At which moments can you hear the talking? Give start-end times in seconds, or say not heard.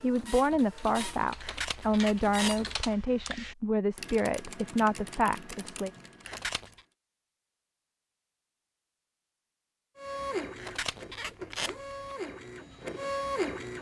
0.0-5.9.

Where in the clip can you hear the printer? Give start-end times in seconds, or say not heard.
0.0-2.9, 9.9-13.7.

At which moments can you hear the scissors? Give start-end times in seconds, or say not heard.
1.4-3.0, 6.2-6.8, 10.6-12.2.